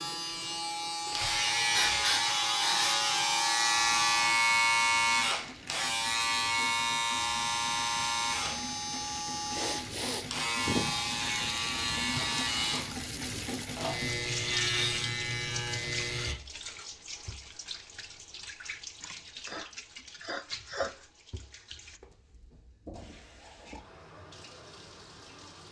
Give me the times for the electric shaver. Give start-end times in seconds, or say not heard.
0.0-16.4.